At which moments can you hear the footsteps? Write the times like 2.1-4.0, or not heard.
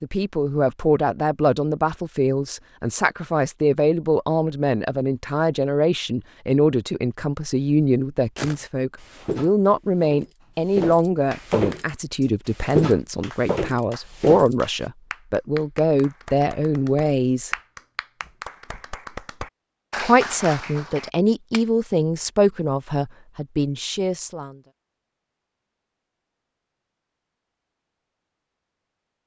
8.3-14.8.